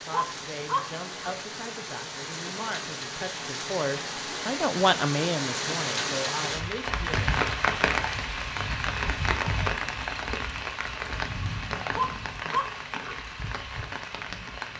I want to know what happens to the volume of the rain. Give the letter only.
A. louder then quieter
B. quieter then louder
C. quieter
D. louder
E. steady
A.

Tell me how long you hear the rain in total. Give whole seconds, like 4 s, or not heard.
15 s.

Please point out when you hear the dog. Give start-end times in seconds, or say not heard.
0.1-1.4, 11.9-13.2.